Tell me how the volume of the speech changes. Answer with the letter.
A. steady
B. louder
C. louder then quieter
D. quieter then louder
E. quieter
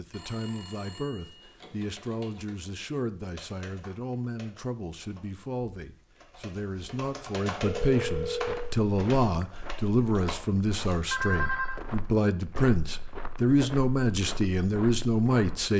B.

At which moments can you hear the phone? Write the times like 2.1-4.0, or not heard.
0.1-1.5, 7.7-8.7, 11.1-11.8.